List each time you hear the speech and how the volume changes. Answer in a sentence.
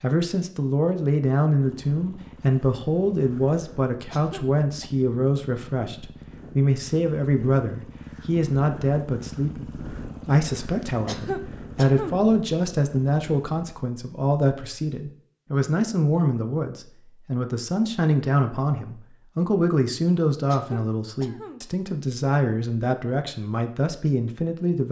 The speech can be heard from 0.0 to 24.8 s, at a steady volume.